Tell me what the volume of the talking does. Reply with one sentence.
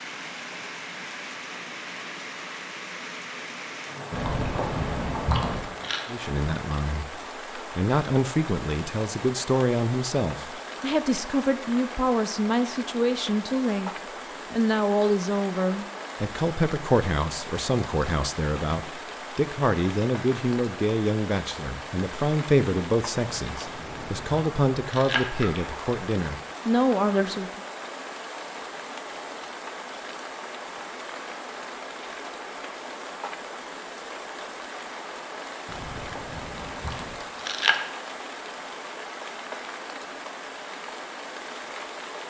The loudness of the talking stays about the same.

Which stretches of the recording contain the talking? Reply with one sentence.
The talking can be heard from 6.1 to 13.9 s and from 14.5 to 27.6 s.